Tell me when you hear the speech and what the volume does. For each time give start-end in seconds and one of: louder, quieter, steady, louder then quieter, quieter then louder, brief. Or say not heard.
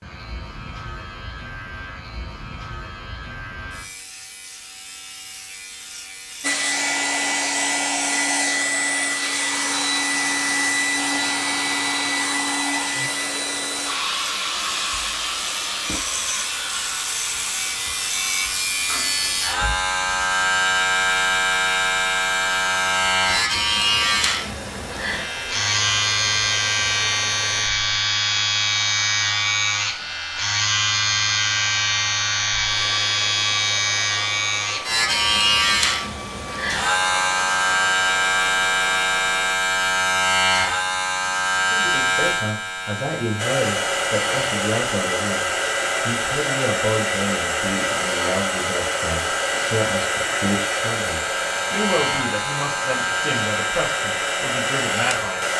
41.7-55.5 steady.